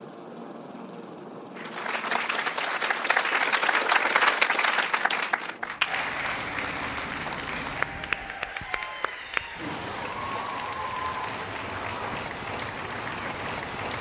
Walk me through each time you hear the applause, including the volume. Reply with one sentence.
You can hear the applause from 1.6 to 13.9 s, getting quieter.